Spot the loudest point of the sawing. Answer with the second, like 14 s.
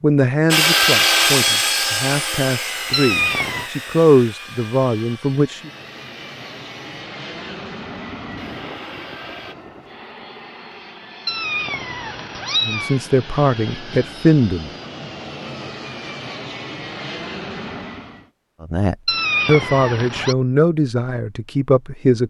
1 s.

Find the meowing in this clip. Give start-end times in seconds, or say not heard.
2.9-3.7, 11.2-13.0, 19.1-20.4.